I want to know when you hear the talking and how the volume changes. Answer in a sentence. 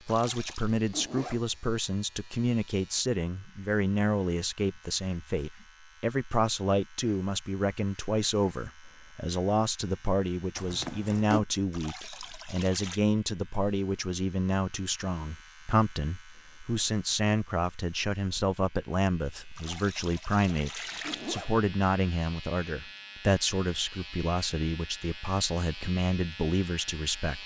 You can hear the talking from 0.1 to 27.4 s, at a steady volume.